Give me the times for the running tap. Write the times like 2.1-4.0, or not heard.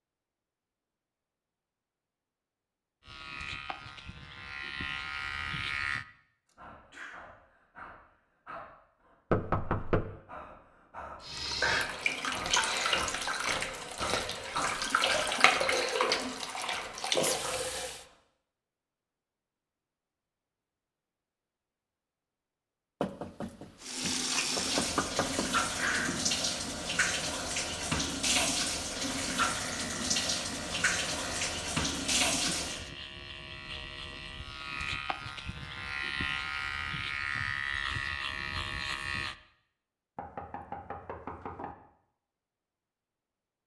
11.2-18.1, 23.8-32.9.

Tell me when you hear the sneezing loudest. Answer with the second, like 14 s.
26 s.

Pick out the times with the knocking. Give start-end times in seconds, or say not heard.
9.3-10.1, 23.0-25.5, 40.1-41.8.